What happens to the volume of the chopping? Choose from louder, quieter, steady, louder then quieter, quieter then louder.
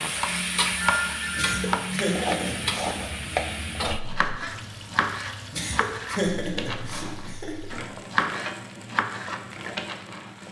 quieter then louder.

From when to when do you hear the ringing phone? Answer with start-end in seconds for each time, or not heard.
0.8-1.6.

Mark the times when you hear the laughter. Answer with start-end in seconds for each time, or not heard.
1.4-2.9, 5.5-7.8.